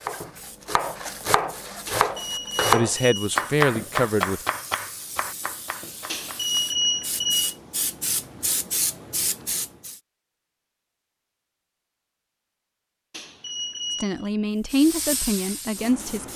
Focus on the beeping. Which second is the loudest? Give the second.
7 s.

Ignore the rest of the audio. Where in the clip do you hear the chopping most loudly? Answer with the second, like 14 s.
3 s.